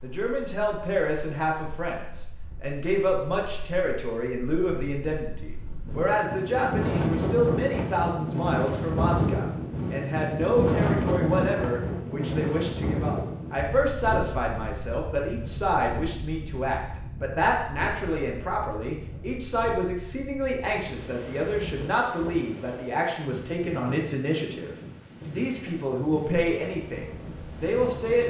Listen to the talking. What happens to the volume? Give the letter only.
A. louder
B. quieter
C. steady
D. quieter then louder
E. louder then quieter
C.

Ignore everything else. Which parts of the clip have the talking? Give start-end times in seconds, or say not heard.
0.0-28.2.